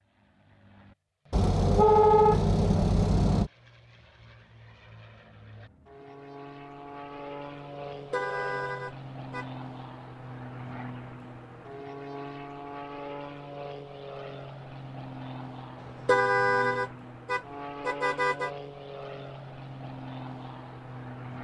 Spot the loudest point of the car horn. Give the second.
2 s.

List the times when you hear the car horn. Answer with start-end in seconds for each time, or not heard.
1.3-3.5, 7.9-9.4, 15.8-18.5.